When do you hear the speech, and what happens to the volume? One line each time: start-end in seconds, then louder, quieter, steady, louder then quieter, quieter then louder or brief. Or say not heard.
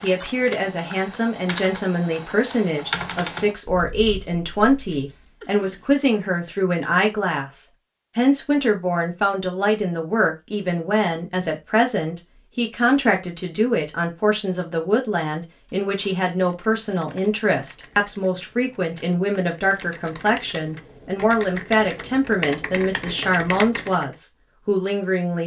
0.0-25.4 steady.